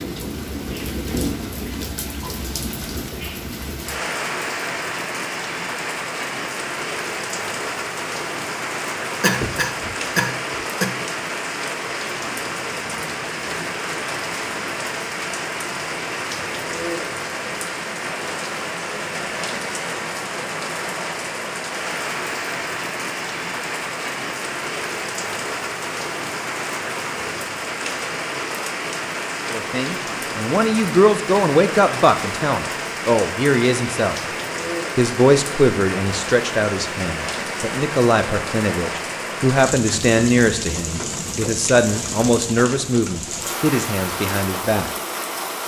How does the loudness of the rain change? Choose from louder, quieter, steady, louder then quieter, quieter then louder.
steady.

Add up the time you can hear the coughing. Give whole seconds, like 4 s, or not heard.
2 s.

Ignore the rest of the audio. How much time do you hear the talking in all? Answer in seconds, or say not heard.
15 s.